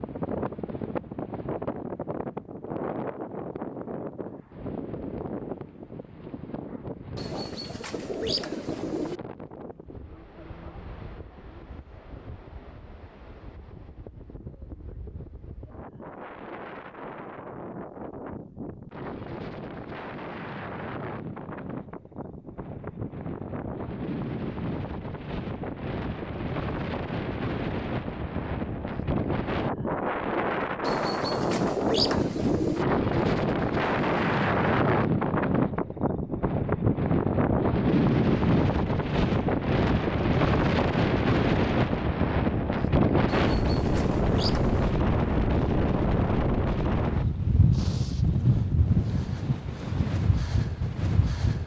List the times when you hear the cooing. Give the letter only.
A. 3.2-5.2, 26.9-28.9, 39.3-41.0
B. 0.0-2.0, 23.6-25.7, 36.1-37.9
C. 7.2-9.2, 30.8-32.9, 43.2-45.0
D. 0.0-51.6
C.